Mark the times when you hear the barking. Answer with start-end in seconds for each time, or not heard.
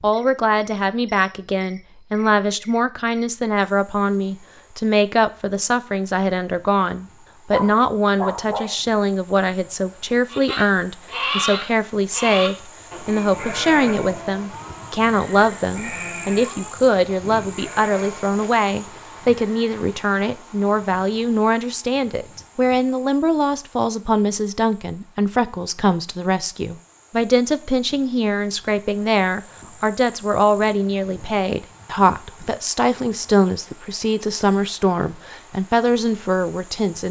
7.5-8.8.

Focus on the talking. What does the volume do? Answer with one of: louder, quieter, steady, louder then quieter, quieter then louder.
steady.